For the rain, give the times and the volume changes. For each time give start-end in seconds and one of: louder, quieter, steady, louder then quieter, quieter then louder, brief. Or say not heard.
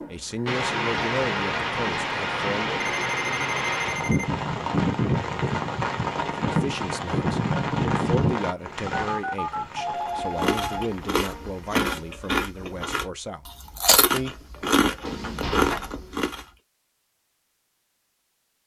0.0-11.8 quieter.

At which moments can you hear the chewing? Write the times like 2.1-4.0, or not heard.
10.2-16.4.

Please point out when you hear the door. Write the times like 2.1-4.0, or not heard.
15.4-16.1.